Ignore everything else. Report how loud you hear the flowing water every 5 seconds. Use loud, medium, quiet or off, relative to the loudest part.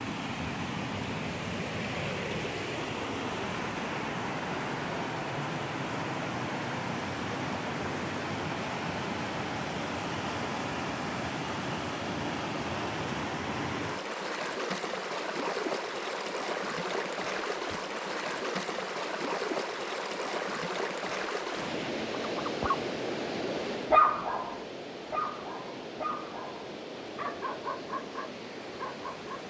loud, loud, loud, loud, loud, medium.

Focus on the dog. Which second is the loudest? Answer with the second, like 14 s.
24 s.